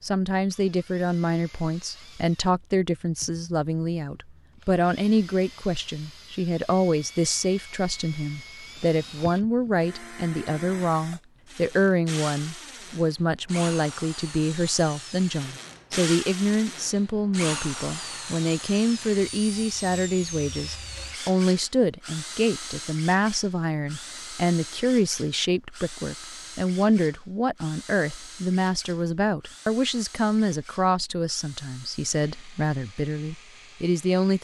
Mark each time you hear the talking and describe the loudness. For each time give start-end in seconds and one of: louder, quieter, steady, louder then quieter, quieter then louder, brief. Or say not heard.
0.0-34.4 steady.